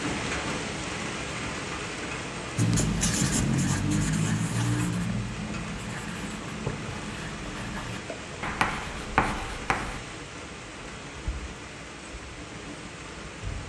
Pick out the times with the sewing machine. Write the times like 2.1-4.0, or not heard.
not heard.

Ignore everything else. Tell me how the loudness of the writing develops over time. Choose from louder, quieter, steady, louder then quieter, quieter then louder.
quieter then louder.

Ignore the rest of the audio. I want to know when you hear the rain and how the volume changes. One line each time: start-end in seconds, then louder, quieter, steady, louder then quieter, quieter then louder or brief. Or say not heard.
0.0-13.6 quieter.